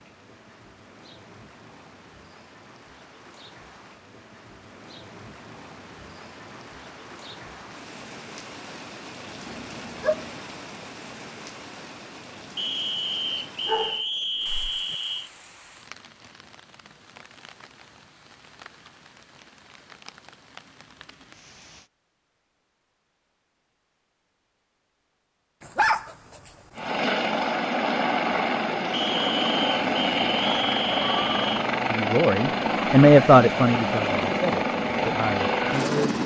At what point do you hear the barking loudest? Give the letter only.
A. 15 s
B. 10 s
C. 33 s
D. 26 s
D.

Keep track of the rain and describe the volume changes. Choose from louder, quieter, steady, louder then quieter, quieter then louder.
louder then quieter.